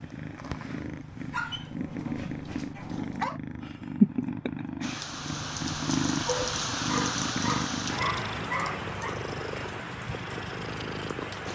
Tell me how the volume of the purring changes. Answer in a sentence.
The loudness of the purring goes up, then down.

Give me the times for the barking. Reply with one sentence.
The barking can be heard from 1.3 to 3.4 s and from 6.2 to 9.2 s.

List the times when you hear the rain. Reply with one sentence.
The rain can be heard from 4.8 to 11.5 s.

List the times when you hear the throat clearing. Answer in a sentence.
The throat clearing can't be heard in this clip.